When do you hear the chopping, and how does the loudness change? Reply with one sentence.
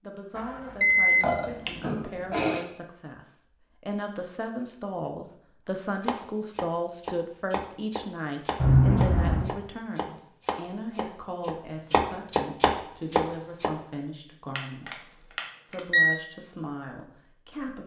The chopping can be heard from 6.0 to 13.7 s, getting louder.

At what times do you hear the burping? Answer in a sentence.
You can hear the burping from 1.2 to 2.6 s.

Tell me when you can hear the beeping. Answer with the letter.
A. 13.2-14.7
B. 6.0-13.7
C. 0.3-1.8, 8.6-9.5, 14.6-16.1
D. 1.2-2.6
C.